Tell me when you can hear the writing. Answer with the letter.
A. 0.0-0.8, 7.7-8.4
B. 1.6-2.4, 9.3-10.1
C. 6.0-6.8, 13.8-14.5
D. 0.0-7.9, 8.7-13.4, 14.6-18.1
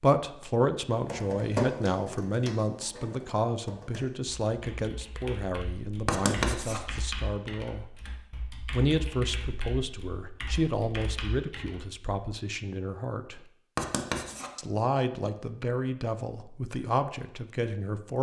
C.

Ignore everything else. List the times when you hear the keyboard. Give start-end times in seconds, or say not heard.
1.0-11.8.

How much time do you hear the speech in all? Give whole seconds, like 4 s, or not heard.
16 s.